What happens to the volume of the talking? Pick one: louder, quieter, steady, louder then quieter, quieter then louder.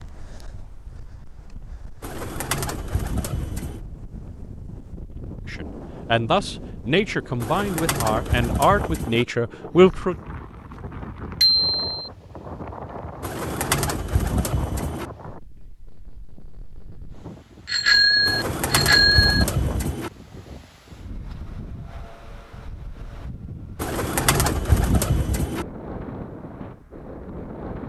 steady.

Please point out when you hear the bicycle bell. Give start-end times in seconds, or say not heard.
11.4-12.1, 17.6-19.4.